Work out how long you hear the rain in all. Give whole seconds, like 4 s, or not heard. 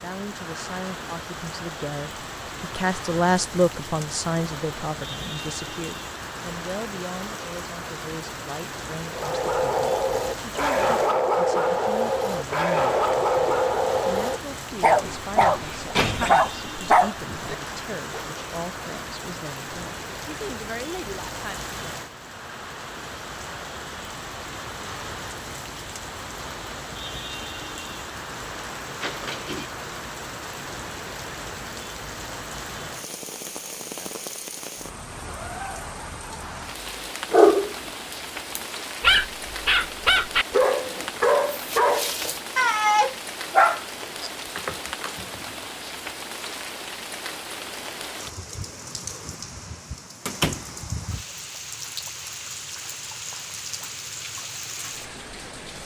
56 s.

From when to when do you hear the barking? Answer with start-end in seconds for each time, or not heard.
9.1-18.2, 37.3-45.2.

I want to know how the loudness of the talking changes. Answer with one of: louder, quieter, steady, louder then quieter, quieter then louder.
quieter.